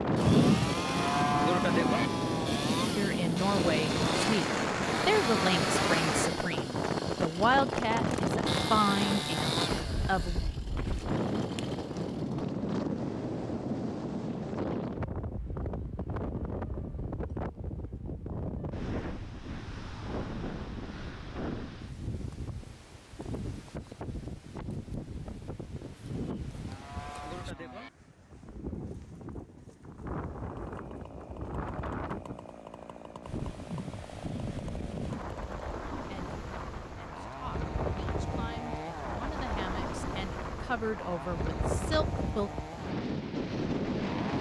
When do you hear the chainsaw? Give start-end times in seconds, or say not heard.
0.0-12.3, 30.4-44.3.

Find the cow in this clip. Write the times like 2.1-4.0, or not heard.
0.2-2.1, 26.1-27.9.